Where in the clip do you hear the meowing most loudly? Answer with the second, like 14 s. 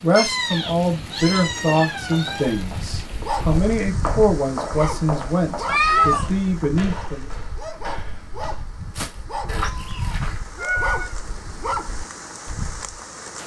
6 s.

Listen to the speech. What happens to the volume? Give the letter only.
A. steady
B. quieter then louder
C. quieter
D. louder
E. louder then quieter
A.